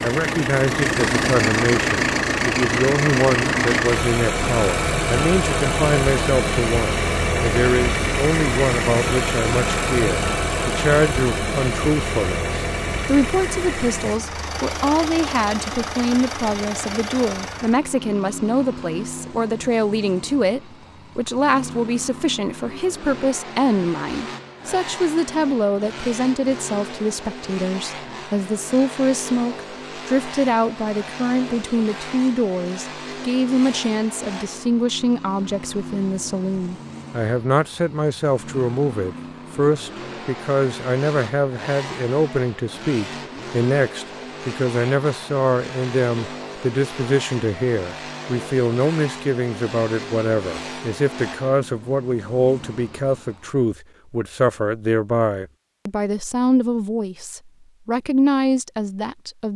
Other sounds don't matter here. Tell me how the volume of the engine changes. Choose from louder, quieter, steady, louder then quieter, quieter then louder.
quieter.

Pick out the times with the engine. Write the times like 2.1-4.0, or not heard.
0.0-53.6.